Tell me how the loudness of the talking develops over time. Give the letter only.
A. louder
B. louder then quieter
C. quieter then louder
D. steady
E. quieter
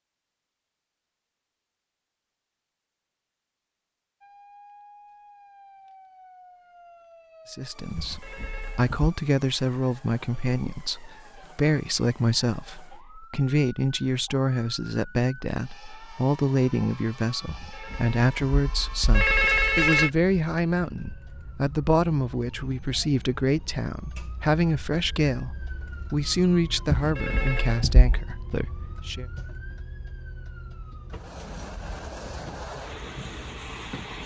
D.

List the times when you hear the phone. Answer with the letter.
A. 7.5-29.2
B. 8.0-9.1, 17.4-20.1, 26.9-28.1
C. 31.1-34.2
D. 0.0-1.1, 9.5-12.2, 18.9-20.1
B.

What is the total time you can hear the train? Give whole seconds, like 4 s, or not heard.
3 s.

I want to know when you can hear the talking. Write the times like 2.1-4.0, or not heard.
7.5-29.2.